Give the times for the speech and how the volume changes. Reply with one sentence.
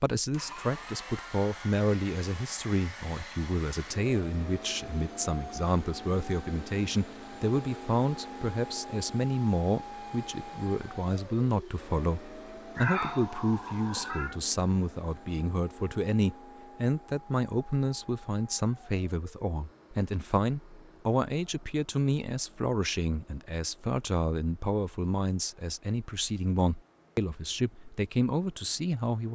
You can hear the speech from 0.0 to 29.2 s, at a steady volume.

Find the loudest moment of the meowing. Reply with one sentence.
The loudest moment of the meowing is at 13 seconds.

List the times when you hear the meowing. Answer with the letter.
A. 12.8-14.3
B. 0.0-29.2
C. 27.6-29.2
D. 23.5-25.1
A.